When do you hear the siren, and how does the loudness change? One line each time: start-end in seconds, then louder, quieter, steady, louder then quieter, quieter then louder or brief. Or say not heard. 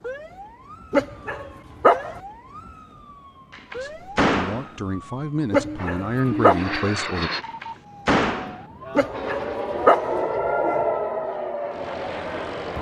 0.0-12.7 louder.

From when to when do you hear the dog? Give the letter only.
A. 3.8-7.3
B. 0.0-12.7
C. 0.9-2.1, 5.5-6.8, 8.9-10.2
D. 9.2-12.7
C.